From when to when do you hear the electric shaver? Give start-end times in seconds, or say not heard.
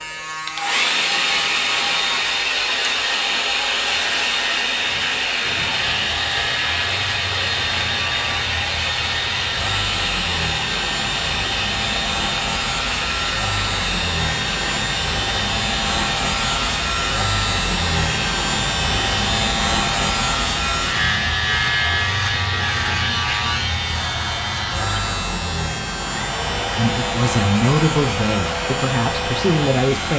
0.0-30.1.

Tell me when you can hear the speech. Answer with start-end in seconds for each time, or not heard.
26.8-30.1.